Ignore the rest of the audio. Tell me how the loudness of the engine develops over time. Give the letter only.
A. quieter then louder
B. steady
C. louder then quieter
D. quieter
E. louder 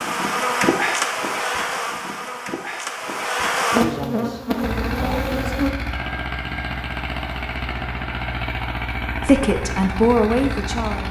B.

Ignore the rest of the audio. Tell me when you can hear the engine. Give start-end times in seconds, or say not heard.
4.6-11.0.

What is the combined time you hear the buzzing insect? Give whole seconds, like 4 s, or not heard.
6 s.